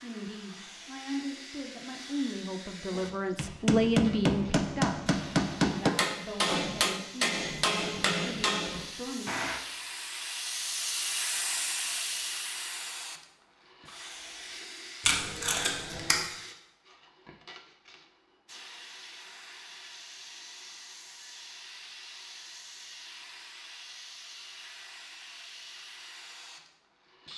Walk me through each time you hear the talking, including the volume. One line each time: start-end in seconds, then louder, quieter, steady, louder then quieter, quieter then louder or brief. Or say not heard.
0.0-9.3 louder then quieter.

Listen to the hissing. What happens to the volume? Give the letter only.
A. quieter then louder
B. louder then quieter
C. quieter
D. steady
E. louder
B.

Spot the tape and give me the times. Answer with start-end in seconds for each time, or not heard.
15.0-16.2.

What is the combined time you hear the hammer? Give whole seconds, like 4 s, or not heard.
7 s.